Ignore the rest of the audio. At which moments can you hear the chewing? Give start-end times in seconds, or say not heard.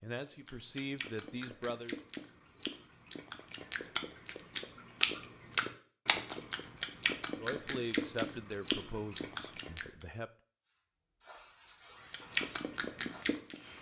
0.2-9.9, 12.1-13.7.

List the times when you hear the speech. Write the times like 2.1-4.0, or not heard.
0.0-1.9, 7.3-10.3.